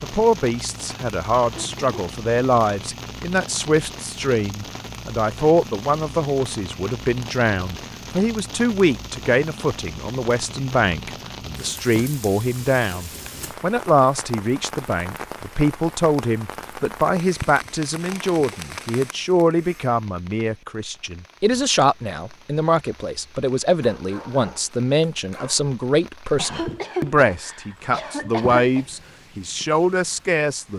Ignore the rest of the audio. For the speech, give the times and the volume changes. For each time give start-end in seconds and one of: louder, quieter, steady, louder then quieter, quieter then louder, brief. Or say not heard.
0.0-30.7 steady.